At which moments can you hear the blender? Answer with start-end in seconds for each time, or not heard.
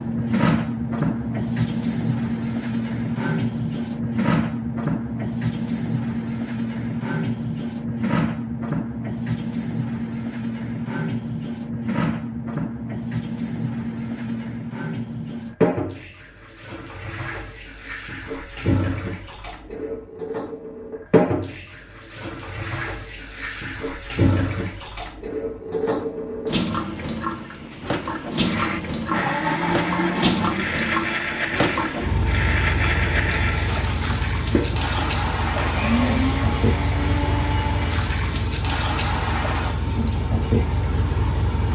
28.4-38.5.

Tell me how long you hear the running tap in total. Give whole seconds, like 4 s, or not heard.
42 s.